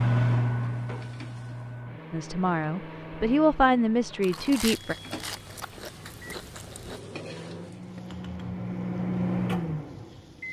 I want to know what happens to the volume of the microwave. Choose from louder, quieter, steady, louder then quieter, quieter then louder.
quieter then louder.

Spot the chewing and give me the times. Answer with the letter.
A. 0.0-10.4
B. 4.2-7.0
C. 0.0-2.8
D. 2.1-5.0
B.